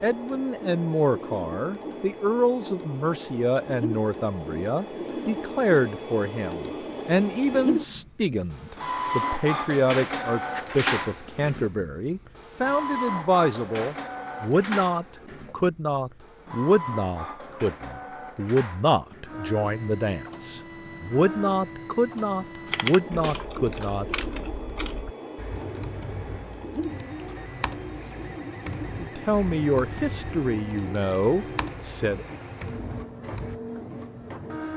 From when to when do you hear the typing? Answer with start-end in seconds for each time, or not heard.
22.6-33.6.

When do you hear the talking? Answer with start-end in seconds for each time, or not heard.
0.0-24.1, 29.0-32.2.